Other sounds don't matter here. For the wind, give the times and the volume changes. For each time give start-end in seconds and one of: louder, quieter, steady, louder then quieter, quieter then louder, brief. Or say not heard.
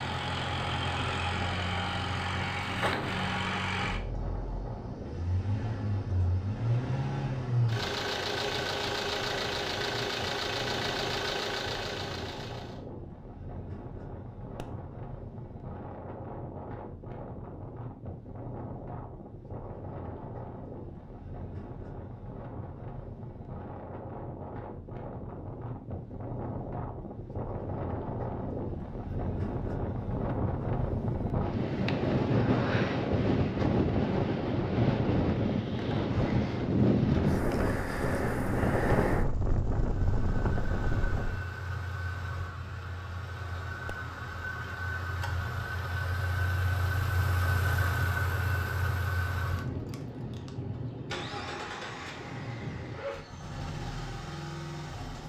0.0-41.5 louder.